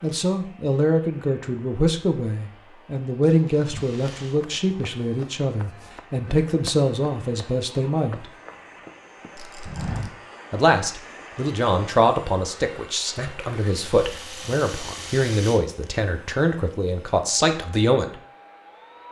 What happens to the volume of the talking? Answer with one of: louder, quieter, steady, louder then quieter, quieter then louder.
steady.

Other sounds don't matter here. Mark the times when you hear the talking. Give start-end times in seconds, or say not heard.
0.0-8.3, 10.5-18.1.